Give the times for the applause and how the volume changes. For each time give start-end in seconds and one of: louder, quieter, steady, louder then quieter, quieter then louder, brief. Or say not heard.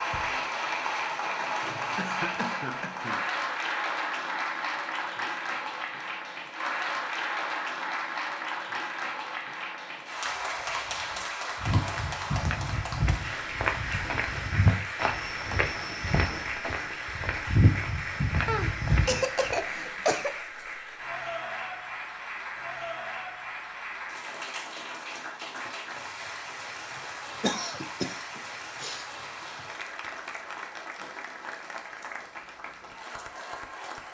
0.0-34.0 quieter.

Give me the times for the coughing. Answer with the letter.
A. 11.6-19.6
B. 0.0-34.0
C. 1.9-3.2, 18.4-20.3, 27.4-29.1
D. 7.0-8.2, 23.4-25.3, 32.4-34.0
C.